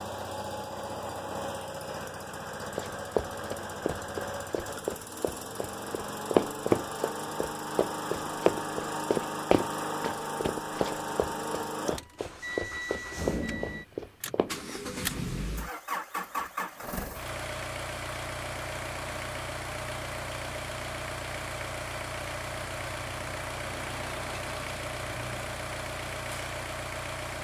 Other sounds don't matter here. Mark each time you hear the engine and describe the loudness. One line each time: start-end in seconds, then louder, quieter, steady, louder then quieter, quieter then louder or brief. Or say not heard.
0.0-27.3 steady.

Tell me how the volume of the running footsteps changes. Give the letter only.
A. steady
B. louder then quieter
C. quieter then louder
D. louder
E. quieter
B.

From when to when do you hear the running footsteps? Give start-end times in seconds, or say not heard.
2.8-14.7.